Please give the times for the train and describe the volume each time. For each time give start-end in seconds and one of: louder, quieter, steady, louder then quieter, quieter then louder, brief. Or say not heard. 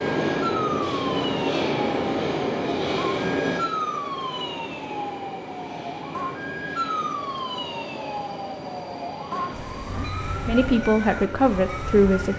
0.0-12.3 quieter.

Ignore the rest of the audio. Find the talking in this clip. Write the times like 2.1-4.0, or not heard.
9.9-12.3.